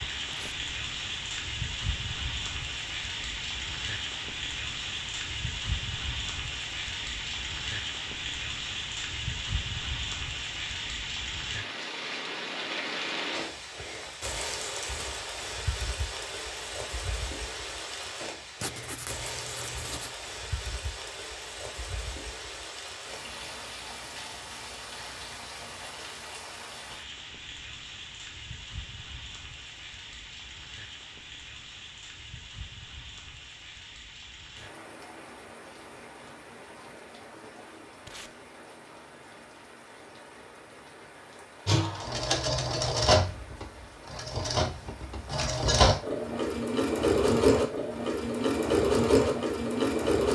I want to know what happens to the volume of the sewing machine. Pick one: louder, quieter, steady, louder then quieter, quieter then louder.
quieter then louder.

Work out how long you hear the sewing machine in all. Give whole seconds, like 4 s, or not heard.
9 s.